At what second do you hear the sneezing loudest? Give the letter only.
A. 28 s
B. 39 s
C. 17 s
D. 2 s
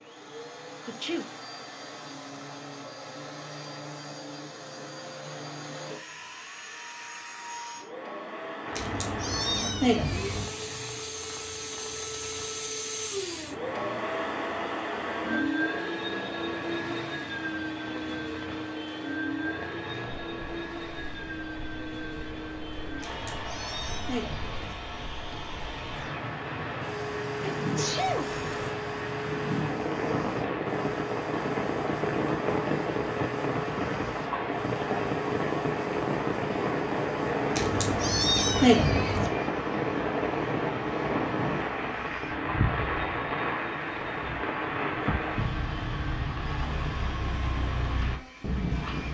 A.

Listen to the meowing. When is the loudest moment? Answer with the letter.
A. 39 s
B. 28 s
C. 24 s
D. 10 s
A.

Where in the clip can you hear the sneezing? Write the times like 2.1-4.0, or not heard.
0.8-1.3, 27.4-28.7.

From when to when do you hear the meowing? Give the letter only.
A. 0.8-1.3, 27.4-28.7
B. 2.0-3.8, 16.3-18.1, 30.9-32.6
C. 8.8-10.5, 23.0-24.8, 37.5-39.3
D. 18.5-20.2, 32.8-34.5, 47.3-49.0
C.